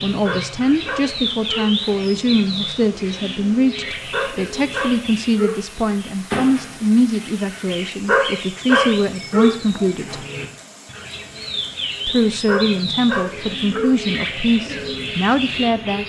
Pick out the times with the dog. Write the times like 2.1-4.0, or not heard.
0.2-2.1, 4.1-6.0, 8.1-9.9, 12.4-13.9.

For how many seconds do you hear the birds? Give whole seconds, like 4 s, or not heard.
16 s.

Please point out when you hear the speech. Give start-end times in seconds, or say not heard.
0.0-10.2, 12.1-16.0.